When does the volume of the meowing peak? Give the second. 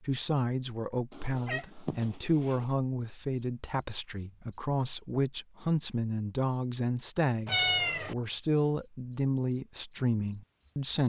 8 s.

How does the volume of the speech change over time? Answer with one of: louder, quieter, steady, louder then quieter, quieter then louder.
steady.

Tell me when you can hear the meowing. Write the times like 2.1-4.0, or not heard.
1.1-2.6, 7.5-8.2.